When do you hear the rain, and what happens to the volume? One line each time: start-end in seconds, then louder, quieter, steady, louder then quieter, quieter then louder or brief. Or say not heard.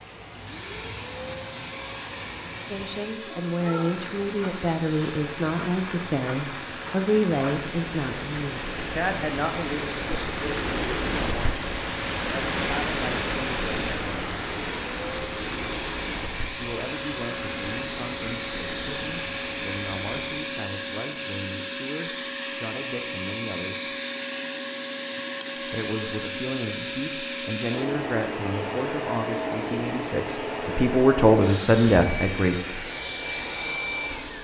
0.0-20.6 louder then quieter.